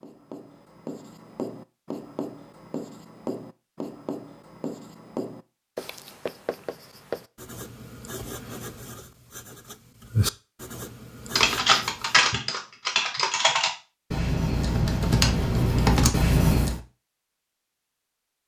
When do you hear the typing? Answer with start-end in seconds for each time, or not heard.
11.3-16.8.